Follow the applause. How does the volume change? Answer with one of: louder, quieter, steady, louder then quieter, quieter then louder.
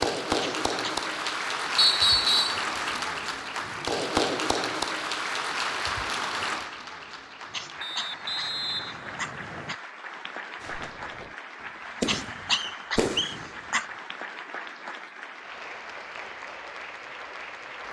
quieter.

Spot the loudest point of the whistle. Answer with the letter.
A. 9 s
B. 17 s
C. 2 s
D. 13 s
C.